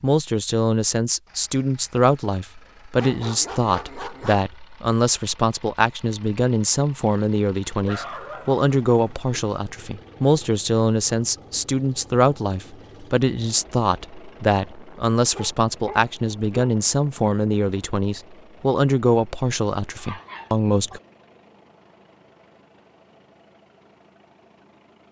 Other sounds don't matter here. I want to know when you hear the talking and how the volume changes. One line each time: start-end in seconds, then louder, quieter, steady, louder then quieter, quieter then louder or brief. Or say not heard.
0.0-21.0 steady.